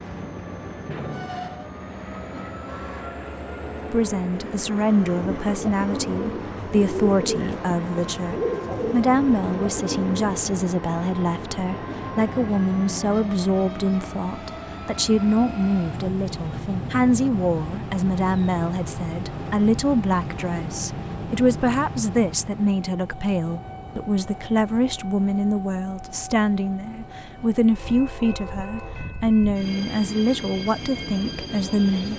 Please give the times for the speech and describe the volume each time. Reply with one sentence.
You can hear the speech from 3.9 to 32.1 s, at a steady volume.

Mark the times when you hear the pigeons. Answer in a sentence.
You can hear the pigeons from 5.0 to 10.6 s.